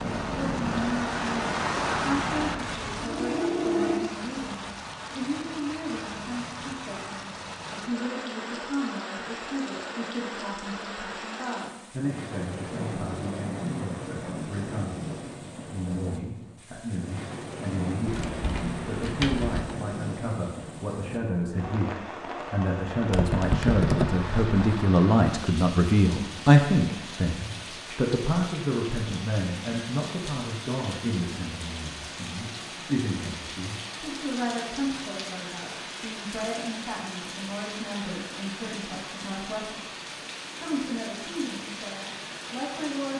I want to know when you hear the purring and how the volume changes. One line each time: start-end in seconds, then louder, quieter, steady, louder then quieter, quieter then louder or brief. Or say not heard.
0.0-4.0 quieter then louder.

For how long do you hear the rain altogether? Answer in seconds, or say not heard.
43 s.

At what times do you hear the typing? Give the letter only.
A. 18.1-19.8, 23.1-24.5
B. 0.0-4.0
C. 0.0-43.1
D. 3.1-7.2
A.